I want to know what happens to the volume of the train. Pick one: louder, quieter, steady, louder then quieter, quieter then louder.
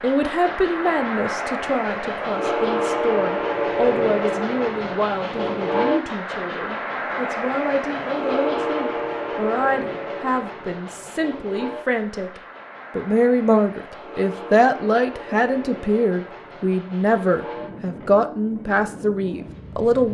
quieter.